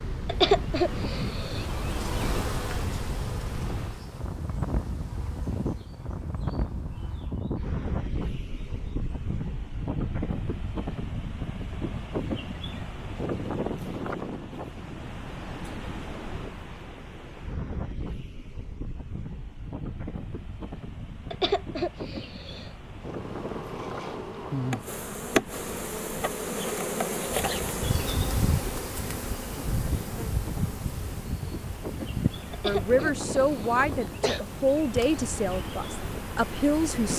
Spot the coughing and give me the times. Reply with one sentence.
You can hear the coughing from 0.2 to 1.6 s, from 21.3 to 22.7 s and from 32.5 to 34.5 s.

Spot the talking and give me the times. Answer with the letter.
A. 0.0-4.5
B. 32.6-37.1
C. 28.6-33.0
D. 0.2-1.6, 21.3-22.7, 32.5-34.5
B.